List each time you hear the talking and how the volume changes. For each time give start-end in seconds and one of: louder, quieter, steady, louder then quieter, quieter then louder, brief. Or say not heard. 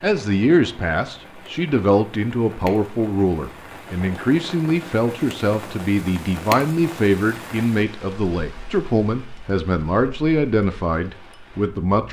0.0-12.0 steady.